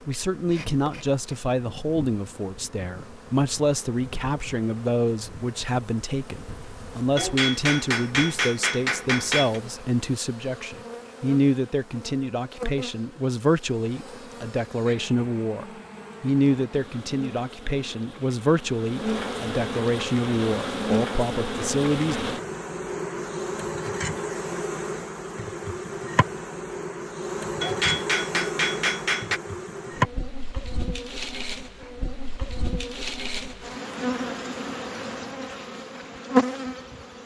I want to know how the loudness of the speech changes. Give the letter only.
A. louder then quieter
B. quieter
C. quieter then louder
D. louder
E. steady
E.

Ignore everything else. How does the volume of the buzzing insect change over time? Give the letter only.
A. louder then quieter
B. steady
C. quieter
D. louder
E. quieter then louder
D.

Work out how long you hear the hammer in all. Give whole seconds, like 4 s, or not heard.
4 s.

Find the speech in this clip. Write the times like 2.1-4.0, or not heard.
0.1-22.1.